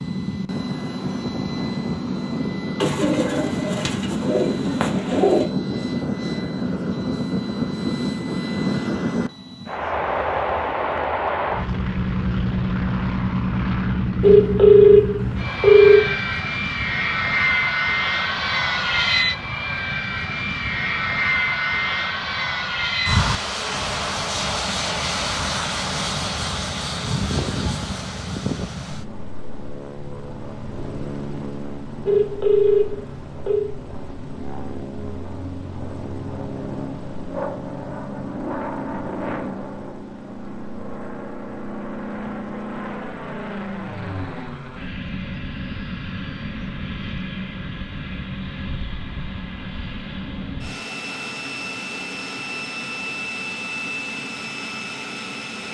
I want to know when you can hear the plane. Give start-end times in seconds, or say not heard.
0.0-55.6.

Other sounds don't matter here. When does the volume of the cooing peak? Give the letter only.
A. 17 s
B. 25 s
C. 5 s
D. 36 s
C.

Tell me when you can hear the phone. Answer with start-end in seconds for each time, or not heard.
14.2-16.0, 32.0-33.7.